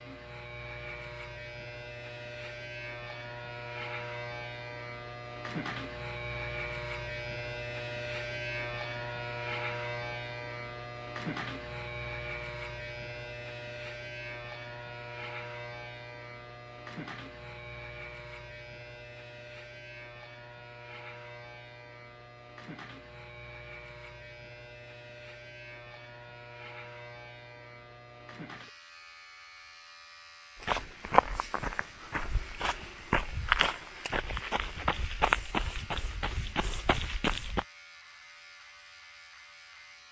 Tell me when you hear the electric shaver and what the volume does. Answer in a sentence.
You can hear the electric shaver from 0.0 to 40.0 s, getting quieter.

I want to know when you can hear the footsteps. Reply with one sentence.
The footsteps can be heard from 30.6 to 37.6 s.